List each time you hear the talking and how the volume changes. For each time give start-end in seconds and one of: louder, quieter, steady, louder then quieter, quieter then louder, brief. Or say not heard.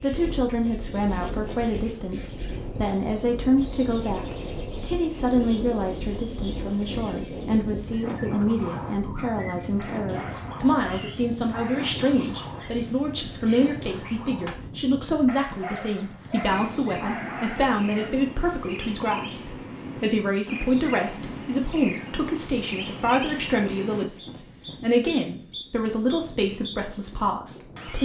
0.0-27.9 steady.